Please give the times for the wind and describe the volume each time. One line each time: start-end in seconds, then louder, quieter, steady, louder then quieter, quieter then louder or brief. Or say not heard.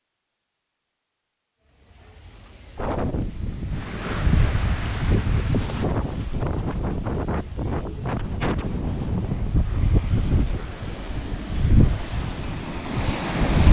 2.8-13.6 steady.